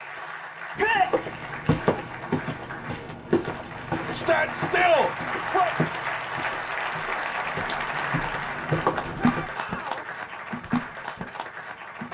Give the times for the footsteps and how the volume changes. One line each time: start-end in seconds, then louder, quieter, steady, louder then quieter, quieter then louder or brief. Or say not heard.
0.9-9.5 quieter then louder.